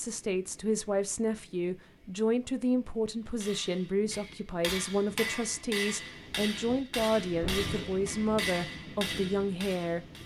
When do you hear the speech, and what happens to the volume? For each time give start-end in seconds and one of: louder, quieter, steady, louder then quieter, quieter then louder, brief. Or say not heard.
0.0-10.1 steady.